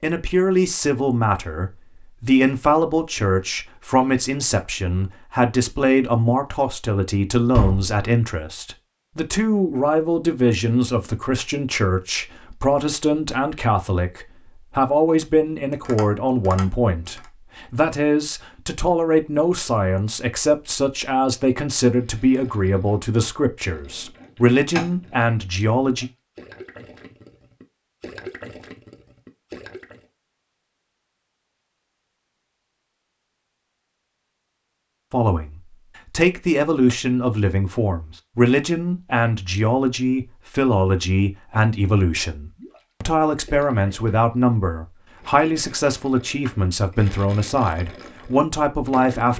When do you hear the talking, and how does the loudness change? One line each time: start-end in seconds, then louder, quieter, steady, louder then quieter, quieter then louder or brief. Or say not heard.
0.0-26.1 steady
35.1-49.3 steady.